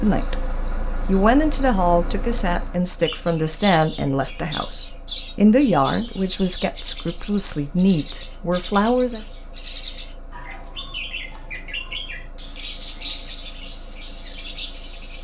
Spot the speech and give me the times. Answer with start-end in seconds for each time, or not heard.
0.0-9.2.